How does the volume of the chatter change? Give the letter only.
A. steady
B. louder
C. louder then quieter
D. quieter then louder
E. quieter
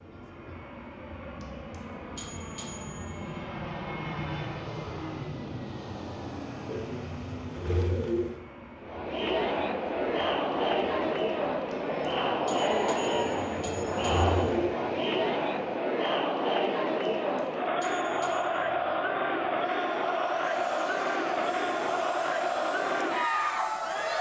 A.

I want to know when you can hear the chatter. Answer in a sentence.
You can hear the chatter from 8.8 to 24.1 s.